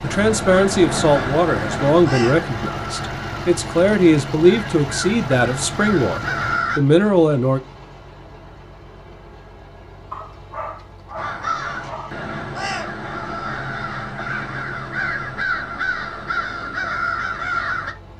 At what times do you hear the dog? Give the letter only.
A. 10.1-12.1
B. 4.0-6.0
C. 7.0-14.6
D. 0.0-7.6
A.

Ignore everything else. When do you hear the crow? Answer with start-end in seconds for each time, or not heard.
0.0-6.8, 11.2-17.9.